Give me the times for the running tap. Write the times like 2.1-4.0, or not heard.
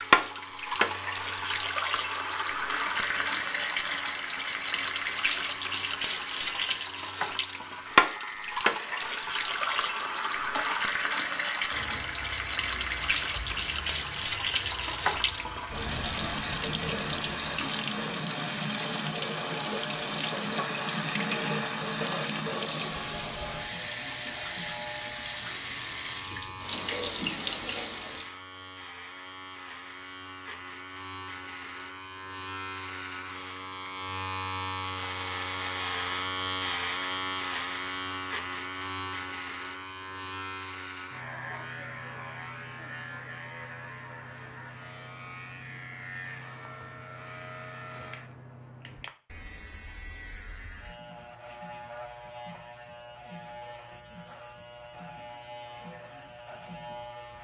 0.0-28.4.